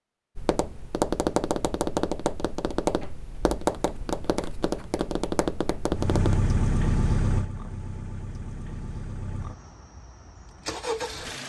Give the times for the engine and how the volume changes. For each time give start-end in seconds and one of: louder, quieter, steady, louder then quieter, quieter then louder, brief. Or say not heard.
5.9-11.4 quieter then louder.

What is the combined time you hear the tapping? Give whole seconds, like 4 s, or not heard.
6 s.